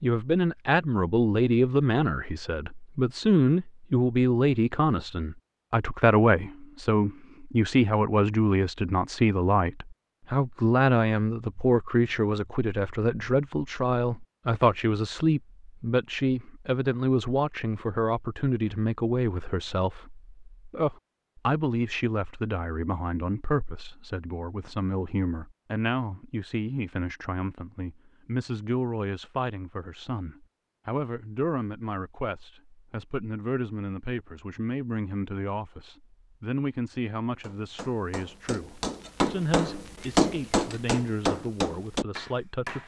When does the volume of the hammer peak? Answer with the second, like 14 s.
40 s.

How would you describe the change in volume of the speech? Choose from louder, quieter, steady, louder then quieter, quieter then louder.
quieter.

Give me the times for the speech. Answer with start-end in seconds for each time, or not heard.
0.0-42.8.